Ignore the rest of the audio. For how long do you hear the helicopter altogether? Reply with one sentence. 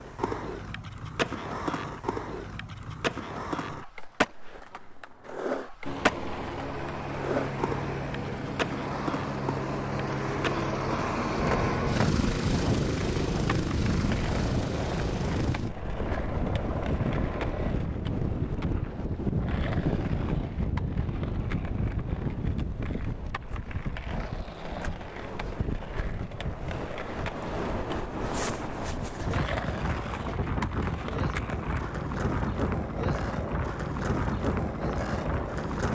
The helicopter can be heard for 12 seconds in total.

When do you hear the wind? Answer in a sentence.
You can hear the wind from 11.3 to 35.8 s.